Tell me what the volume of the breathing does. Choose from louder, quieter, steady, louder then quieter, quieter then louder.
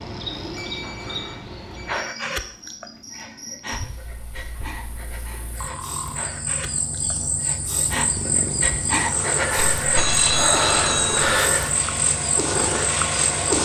quieter then louder.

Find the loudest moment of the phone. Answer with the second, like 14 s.
10 s.